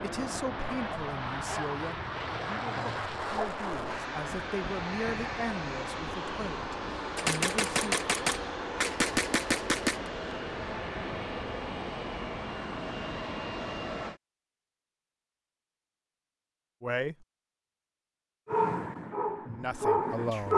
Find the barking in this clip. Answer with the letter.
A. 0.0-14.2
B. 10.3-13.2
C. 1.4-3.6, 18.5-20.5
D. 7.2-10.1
C.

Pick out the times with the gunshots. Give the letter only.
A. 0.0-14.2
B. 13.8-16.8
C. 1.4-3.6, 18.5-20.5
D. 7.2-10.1
D.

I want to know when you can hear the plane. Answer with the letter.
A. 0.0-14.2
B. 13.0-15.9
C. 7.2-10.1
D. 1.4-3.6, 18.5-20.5
A.